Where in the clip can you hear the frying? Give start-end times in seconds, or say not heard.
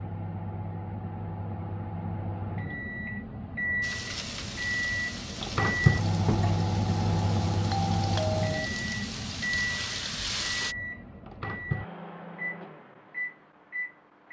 3.8-10.8.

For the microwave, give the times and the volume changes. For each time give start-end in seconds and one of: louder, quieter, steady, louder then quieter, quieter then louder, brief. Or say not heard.
0.0-14.2 louder then quieter.